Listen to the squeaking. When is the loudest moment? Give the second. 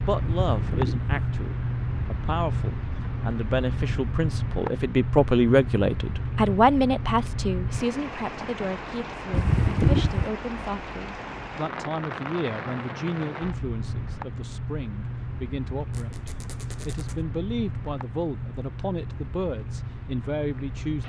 10 s.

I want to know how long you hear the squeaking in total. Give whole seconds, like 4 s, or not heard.
3 s.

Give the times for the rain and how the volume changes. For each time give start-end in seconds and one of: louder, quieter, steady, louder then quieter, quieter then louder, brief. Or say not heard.
0.0-21.0 quieter.